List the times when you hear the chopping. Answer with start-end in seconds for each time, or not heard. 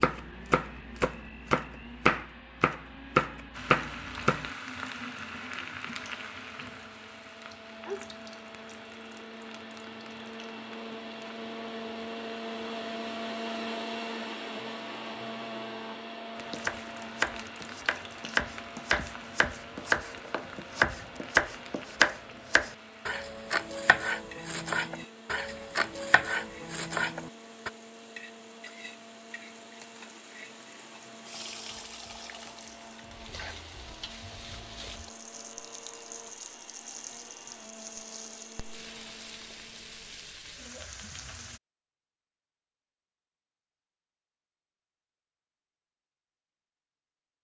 0.0-4.5, 16.4-27.7.